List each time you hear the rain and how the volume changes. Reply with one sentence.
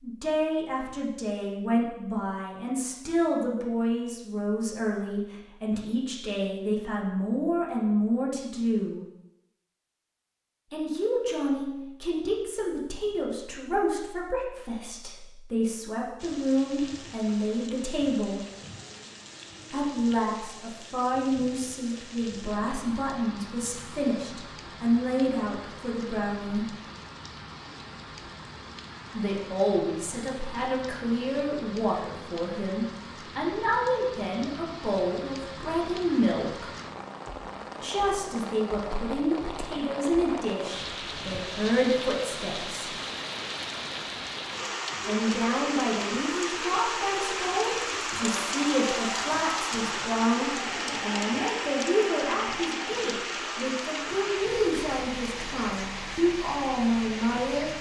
The rain can be heard from 16.1 to 57.7 s, getting louder.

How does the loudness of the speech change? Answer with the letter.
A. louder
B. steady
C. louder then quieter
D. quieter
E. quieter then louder
B.